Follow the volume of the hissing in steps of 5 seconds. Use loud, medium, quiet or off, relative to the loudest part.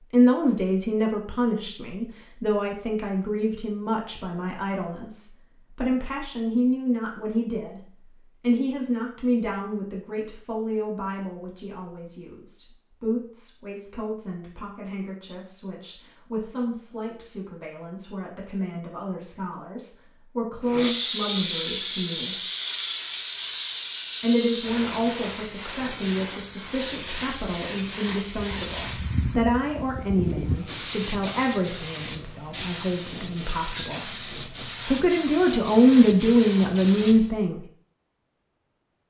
off, off, off, off, loud, medium, medium, medium.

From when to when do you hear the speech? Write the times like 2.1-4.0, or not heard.
0.1-7.8, 8.4-22.4, 24.2-34.1, 34.9-37.6.